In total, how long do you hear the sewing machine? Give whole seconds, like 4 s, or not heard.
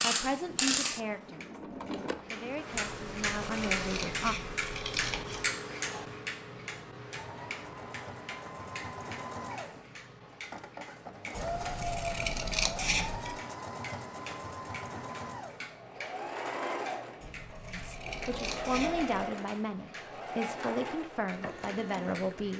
18 s.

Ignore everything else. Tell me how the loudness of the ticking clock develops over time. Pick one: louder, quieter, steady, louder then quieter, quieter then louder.
quieter.